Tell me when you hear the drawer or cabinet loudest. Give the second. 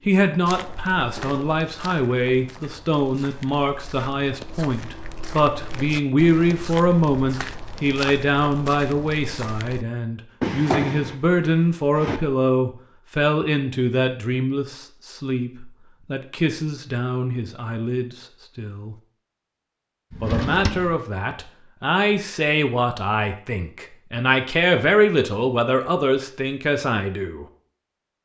11 s.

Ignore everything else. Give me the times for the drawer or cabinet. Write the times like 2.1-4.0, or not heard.
0.5-1.4, 10.4-12.2, 20.1-21.0.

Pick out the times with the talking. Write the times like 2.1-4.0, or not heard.
0.1-18.9, 20.2-27.4.